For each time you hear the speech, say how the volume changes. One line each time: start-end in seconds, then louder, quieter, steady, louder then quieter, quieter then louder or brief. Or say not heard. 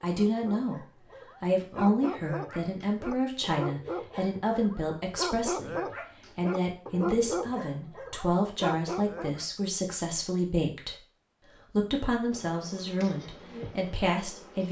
0.0-11.0 steady
11.7-14.6 brief.